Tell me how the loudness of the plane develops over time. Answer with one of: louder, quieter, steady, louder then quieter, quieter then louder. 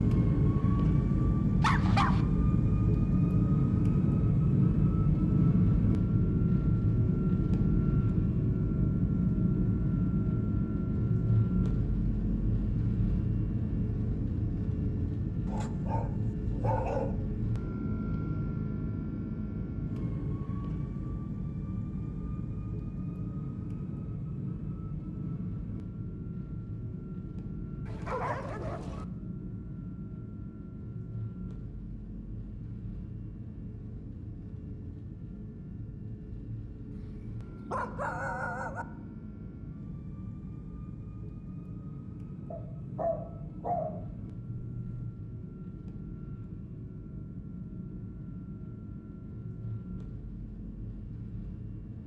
quieter.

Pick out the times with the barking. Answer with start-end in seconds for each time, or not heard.
1.6-2.2, 15.4-17.1, 27.9-29.1, 36.9-38.9, 42.5-45.1.